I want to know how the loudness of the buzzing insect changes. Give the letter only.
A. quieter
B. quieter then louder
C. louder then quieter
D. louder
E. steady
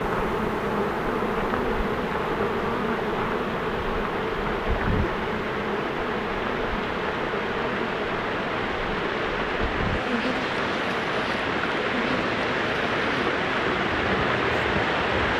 A.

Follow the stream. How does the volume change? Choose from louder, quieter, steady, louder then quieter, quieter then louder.
louder.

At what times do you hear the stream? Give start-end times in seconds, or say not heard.
0.0-15.3.